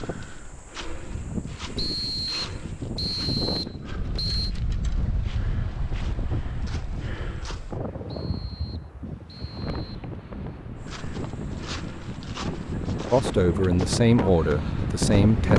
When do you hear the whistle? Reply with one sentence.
You can hear the whistle from 1.8 to 4.5 s and from 8.1 to 9.9 s.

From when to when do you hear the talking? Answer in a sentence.
You can hear the talking from 13.1 to 15.5 s.